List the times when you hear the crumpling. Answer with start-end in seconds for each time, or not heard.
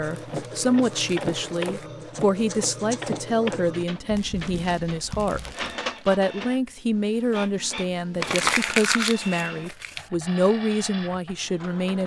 0.1-1.9, 4.2-6.2, 8.2-10.1.